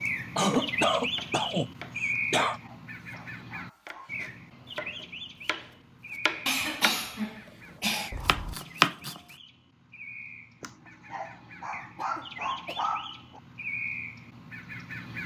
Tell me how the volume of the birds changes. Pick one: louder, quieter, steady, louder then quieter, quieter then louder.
quieter then louder.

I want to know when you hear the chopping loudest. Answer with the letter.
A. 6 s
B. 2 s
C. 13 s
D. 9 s
D.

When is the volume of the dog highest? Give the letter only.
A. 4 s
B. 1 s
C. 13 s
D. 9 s
C.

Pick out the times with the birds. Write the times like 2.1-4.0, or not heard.
0.0-15.2.